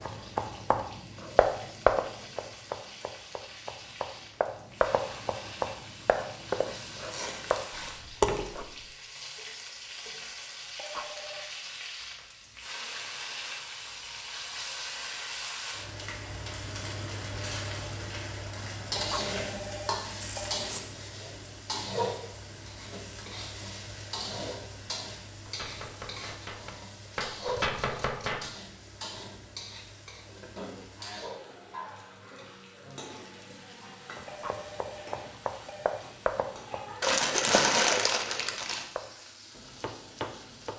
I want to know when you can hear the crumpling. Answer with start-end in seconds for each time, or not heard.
6.7-8.7, 20.2-20.8, 37.0-38.9.